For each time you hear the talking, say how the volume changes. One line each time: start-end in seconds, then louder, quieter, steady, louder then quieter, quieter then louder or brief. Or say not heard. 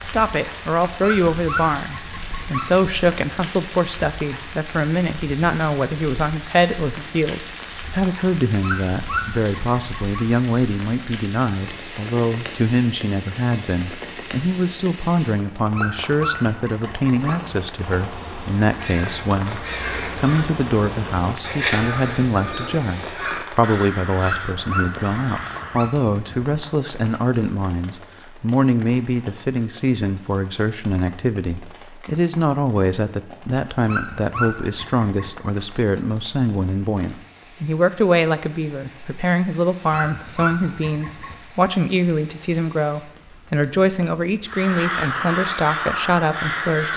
0.0-46.9 steady.